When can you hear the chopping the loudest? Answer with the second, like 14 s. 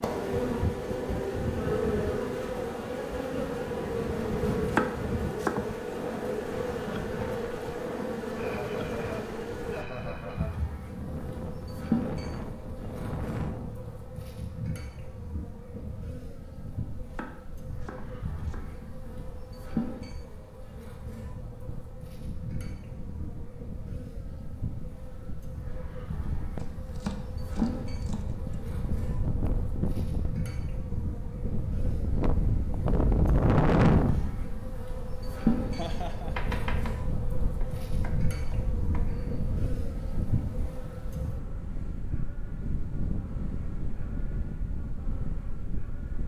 5 s.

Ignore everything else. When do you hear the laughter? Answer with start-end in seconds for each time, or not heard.
8.3-10.6, 35.7-36.5.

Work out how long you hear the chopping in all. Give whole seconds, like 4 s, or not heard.
7 s.